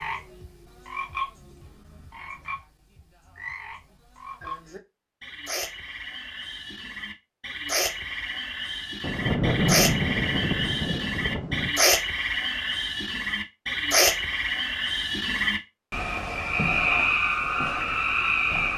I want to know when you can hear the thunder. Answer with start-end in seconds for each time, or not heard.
9.0-11.8.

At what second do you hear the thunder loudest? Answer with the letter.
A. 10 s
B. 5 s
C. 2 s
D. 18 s
A.